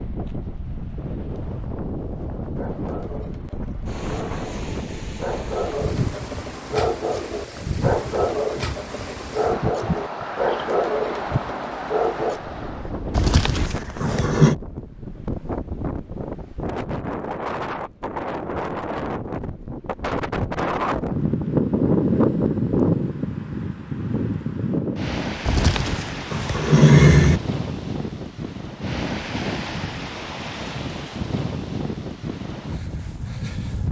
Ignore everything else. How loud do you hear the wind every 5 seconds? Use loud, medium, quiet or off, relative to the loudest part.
medium, medium, medium, medium, loud, medium, medium.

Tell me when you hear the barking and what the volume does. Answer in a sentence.
The barking can be heard from 2.1 to 12.4 s, getting louder.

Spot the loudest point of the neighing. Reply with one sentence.
The loudest moment of the neighing is at 27 seconds.